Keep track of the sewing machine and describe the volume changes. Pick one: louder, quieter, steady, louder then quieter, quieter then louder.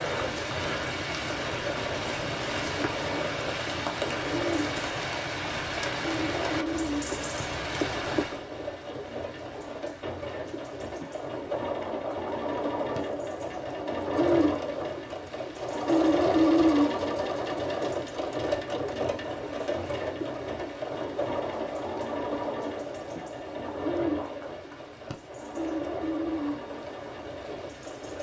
louder then quieter.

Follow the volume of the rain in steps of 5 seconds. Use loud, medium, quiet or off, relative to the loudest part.
loud, loud, quiet, quiet, quiet, quiet.